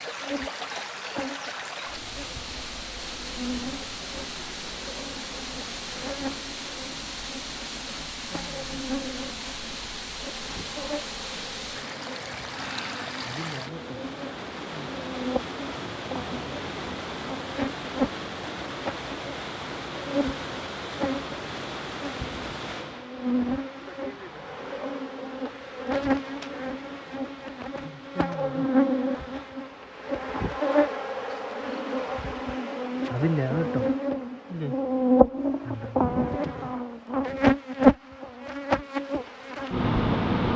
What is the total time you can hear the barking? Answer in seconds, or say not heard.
not heard.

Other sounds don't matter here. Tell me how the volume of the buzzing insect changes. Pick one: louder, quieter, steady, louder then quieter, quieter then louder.
louder.